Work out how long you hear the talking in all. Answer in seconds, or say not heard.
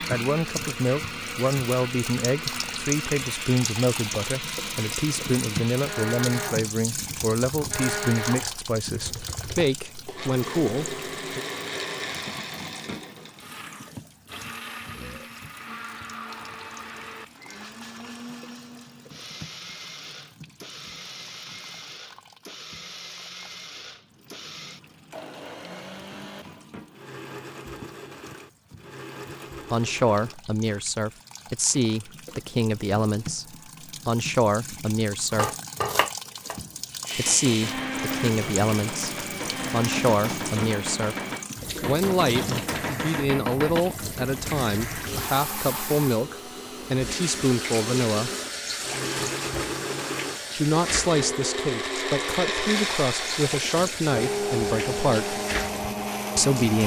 33 s.